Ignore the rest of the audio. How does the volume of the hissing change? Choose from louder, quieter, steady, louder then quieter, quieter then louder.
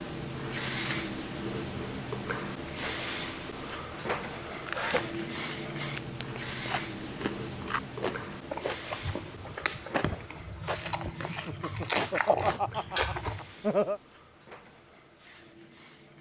quieter.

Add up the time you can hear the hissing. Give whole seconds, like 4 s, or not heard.
16 s.